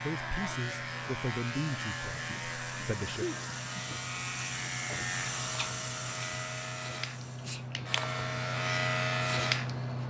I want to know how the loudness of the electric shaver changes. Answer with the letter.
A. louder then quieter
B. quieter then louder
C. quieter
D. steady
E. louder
E.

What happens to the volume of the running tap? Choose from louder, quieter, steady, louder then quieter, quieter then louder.
louder then quieter.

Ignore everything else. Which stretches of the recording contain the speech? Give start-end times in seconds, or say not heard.
0.0-3.2.